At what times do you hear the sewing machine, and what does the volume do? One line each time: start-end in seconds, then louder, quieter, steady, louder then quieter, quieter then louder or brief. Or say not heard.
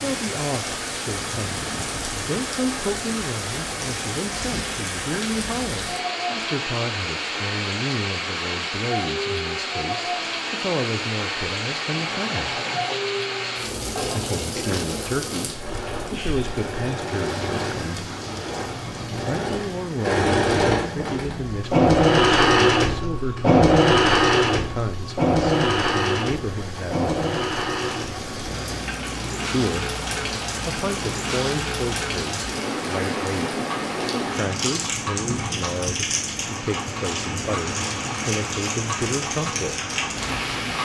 11.8-40.8 louder then quieter.